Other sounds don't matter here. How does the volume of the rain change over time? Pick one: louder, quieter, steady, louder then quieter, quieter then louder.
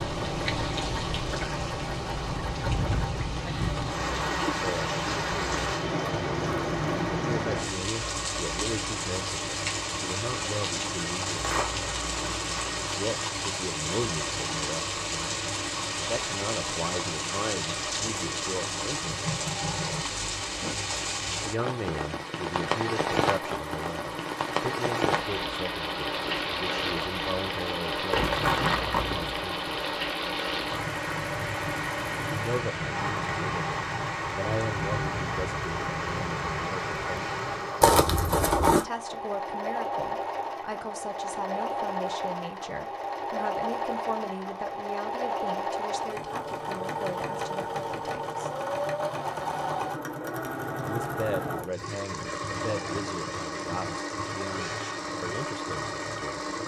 steady.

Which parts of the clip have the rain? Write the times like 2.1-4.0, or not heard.
0.0-37.9.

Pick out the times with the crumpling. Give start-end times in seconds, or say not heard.
11.3-12.9, 28.1-29.4, 37.8-38.9.